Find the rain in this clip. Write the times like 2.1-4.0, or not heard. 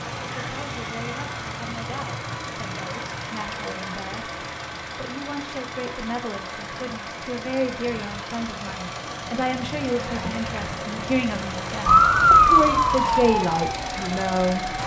not heard.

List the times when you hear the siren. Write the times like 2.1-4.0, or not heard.
11.8-14.8.